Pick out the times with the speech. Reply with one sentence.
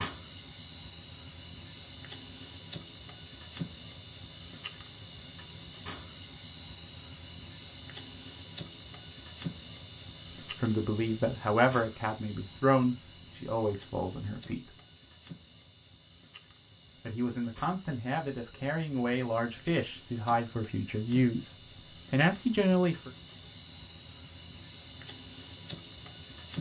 You can hear the speech from 10.4 to 14.7 s and from 17.0 to 23.1 s.